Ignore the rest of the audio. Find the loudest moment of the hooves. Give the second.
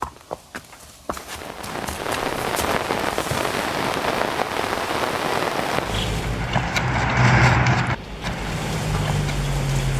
7 s.